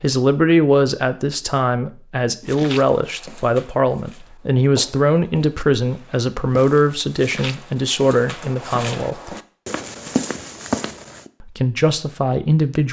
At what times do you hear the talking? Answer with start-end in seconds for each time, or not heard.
0.0-9.3, 11.4-12.8.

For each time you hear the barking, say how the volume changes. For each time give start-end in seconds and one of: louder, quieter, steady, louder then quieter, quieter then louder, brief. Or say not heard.
not heard.